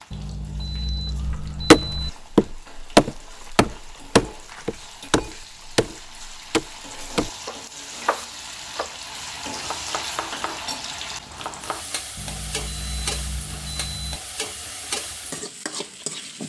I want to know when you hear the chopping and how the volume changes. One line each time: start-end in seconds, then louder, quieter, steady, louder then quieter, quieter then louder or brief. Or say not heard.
1.2-8.9 quieter
9.6-11.8 brief.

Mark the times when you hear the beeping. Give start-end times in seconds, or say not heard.
0.1-2.1, 12.2-14.2.